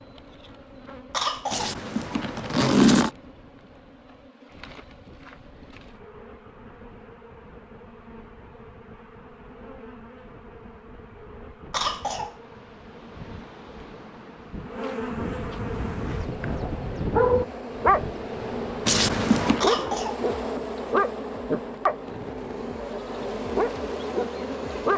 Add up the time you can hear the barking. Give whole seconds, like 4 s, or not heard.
8 s.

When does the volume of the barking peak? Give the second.
17 s.